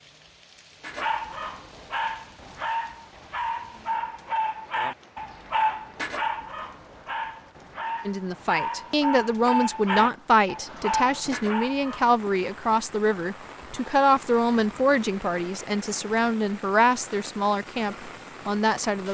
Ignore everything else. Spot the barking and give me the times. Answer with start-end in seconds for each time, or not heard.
0.8-12.2.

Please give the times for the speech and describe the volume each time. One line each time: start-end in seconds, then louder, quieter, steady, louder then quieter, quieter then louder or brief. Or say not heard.
8.1-19.1 steady.